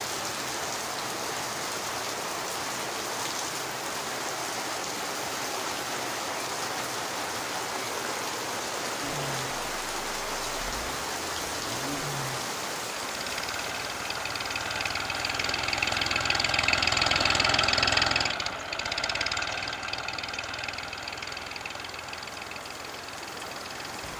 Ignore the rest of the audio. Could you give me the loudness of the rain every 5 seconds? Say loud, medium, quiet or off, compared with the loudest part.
loud, loud, loud, medium, medium.